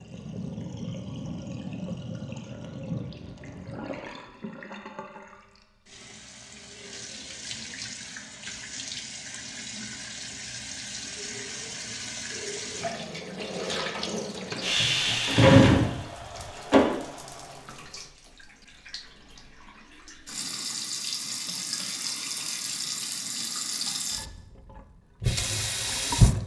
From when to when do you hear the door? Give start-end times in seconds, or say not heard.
14.8-16.8.